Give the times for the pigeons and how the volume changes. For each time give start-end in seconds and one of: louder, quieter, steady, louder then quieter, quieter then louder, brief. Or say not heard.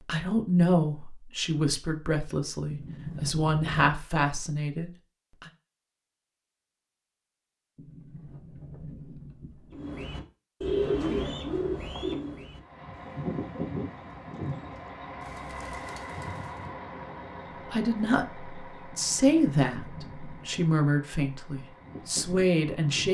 9.7-16.7 quieter.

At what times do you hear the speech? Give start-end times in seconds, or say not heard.
0.1-5.5, 17.7-23.0.